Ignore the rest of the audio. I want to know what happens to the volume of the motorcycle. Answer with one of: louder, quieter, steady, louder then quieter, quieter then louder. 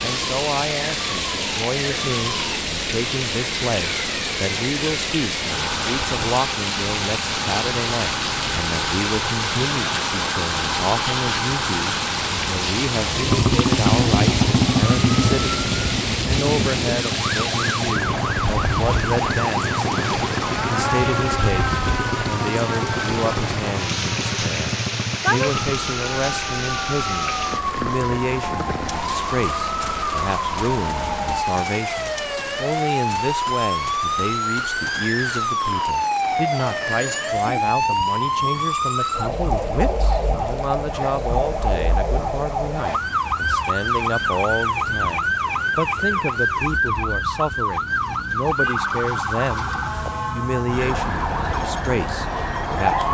quieter.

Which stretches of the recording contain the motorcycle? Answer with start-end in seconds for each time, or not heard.
13.2-25.8.